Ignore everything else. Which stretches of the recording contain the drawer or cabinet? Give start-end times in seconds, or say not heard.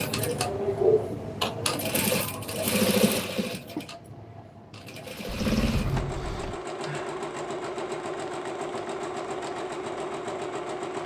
5.2-6.6.